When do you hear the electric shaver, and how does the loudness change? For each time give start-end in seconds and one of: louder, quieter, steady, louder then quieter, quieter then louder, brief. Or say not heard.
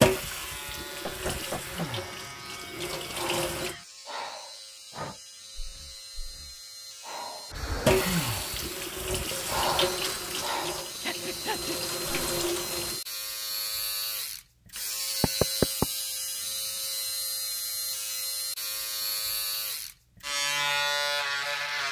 0.1-21.8 louder.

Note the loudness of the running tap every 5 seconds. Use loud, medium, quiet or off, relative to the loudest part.
loud, loud, medium, off, off.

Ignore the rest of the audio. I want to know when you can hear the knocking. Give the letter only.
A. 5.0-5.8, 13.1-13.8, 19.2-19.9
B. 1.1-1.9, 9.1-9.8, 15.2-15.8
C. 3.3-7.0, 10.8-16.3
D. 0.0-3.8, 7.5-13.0
B.